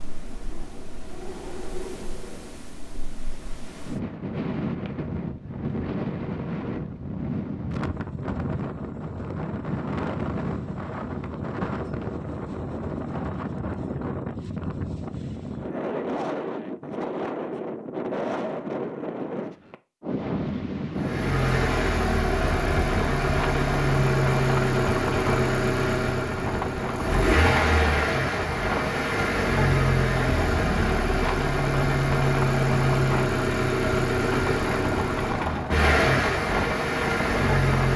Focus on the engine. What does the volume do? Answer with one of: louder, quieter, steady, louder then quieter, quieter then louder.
steady.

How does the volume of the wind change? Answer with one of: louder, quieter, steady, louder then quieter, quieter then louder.
steady.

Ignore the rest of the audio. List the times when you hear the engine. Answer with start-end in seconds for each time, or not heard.
20.9-37.9.